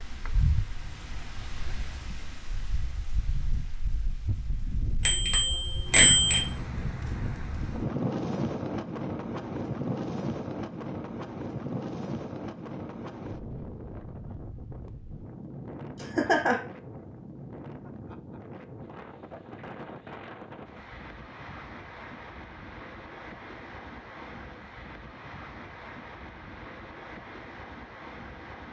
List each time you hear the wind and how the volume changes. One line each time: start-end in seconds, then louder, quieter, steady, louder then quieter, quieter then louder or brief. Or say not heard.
0.0-28.6 louder then quieter.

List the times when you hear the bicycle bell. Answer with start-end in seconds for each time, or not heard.
5.0-6.5.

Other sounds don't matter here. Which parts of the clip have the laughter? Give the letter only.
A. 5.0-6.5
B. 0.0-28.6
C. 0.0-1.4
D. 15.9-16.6
D.